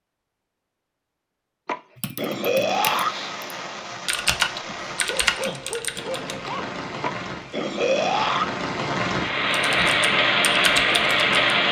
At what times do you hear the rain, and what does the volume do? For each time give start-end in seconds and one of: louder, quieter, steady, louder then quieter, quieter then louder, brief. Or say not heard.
2.8-11.6 louder.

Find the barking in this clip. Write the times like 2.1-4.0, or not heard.
5.0-6.7.